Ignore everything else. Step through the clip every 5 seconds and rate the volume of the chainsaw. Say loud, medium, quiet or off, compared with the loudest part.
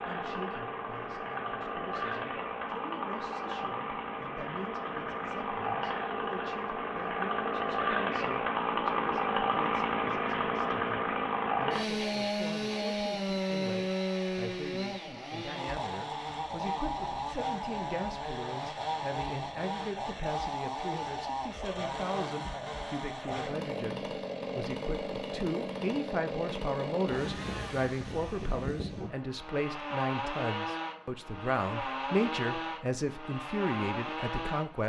medium, loud, loud, medium, medium, medium, medium.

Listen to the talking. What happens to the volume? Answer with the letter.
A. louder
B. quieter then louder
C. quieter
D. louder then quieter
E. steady
A.